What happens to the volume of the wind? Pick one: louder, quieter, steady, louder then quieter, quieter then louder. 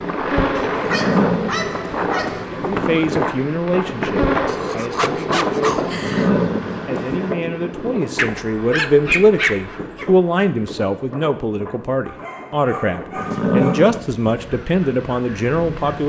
quieter.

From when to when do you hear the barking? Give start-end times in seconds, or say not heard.
0.6-2.5, 4.5-6.3, 8.2-10.1, 12.1-13.9.